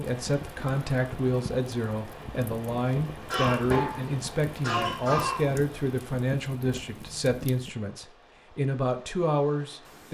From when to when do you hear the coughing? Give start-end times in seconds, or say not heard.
3.2-5.5.